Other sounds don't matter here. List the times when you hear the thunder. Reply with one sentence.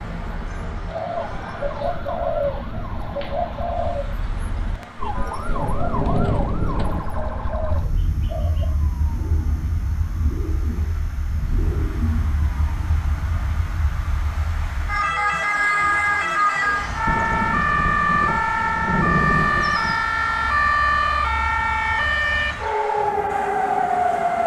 You can hear the thunder from 5.5 to 7.0 s and from 17.1 to 19.9 s.